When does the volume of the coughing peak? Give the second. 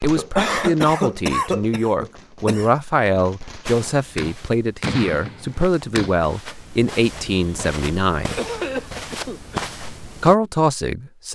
1 s.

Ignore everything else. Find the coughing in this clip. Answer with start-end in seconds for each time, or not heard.
0.1-2.7, 8.2-9.6.